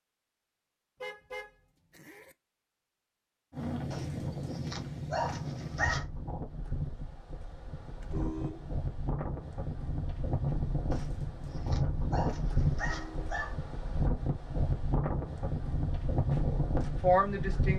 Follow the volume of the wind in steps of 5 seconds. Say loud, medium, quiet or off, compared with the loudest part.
loud, medium, loud, loud.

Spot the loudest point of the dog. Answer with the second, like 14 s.
6 s.